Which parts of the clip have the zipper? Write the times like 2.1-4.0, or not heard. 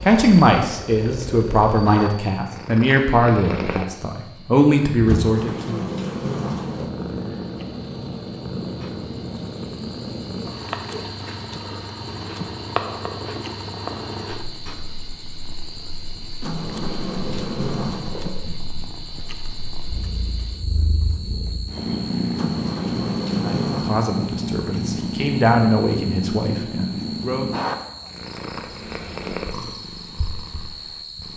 not heard.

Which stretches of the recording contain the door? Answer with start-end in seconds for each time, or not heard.
5.0-6.9, 16.4-18.6, 22.4-23.9.